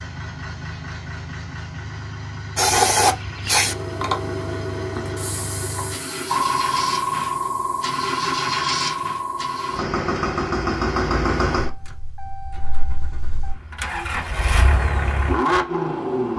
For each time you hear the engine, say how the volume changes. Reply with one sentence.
The engine can be heard from 0.0 to 16.3 s, getting louder.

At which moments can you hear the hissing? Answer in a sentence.
The hissing can be heard from 2.5 to 9.8 s.